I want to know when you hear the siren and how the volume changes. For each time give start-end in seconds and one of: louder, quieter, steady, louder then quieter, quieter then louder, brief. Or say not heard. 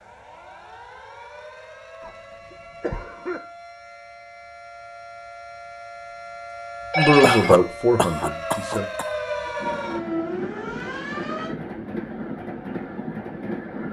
0.0-11.6 louder.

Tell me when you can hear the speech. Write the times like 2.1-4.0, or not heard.
7.0-8.9.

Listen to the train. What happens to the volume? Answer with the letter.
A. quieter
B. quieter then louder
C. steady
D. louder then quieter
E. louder
C.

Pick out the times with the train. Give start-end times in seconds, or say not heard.
9.6-13.8.